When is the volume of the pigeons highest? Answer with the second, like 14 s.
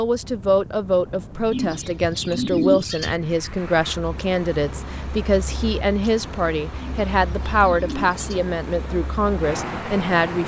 3 s.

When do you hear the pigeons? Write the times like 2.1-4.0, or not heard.
1.5-3.1, 6.8-8.4.